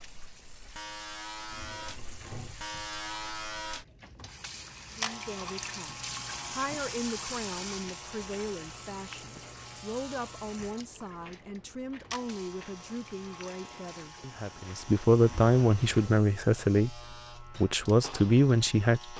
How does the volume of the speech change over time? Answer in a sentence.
The volume of the speech goes up.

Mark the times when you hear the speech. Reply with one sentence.
You can hear the speech from 4.9 to 19.1 s.